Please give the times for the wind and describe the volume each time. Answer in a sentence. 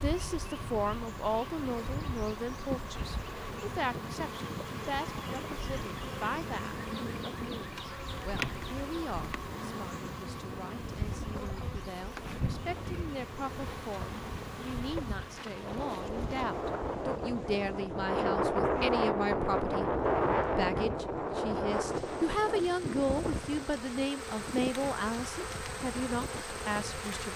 You can hear the wind from 0.2 to 27.3 s, getting louder then quieter.